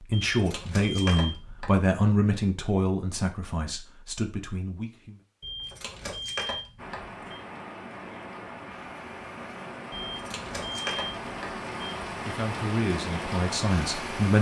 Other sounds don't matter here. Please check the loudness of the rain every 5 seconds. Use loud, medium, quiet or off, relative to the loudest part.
off, medium, loud.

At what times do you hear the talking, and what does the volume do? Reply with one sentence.
You can hear the talking from 0.0 to 5.2 s, getting quieter; and briefly from 12.2 to 14.3 s.